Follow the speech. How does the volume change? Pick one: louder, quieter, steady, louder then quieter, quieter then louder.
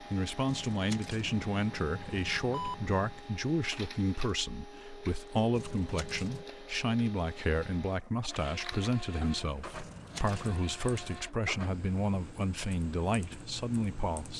steady.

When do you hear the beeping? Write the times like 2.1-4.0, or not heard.
2.5-3.2.